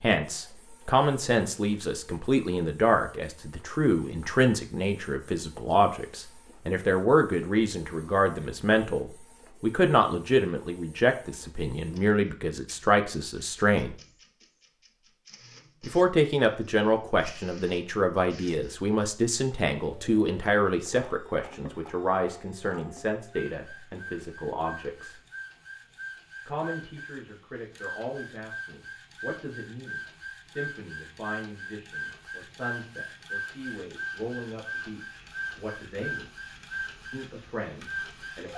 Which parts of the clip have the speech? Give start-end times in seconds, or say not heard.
0.0-13.9, 15.8-25.2, 26.4-36.3, 37.1-38.5.